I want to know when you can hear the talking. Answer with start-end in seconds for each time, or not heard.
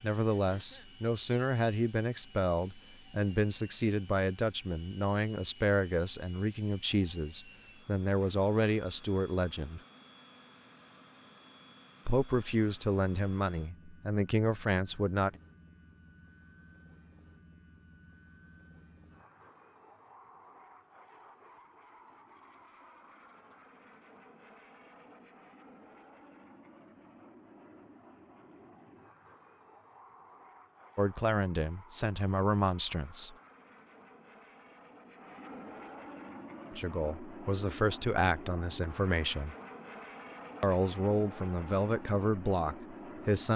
0.0-9.8, 12.1-15.4, 30.9-33.4, 36.7-39.5, 40.6-43.5.